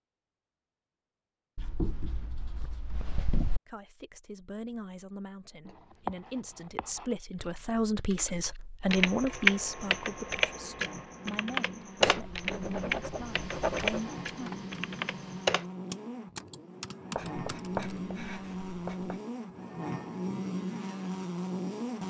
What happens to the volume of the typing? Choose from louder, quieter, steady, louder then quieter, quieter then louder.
quieter.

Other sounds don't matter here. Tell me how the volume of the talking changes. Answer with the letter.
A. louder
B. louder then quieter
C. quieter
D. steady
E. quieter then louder
B.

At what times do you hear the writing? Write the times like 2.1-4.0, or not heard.
1.6-3.6, 5.7-7.0, 12.0-14.0, 17.1-19.1.